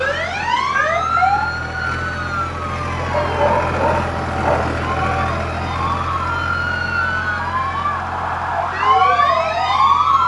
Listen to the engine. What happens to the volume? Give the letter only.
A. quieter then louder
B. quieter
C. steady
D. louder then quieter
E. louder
D.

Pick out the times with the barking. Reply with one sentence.
The barking can be heard from 3.1 to 4.8 s.